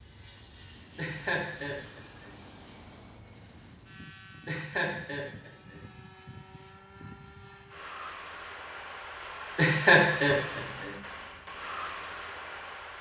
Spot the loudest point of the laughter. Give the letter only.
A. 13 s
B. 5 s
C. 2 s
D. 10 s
D.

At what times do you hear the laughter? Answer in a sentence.
The laughter can be heard from 0.9 to 2.3 s, from 4.5 to 5.8 s and from 9.6 to 10.9 s.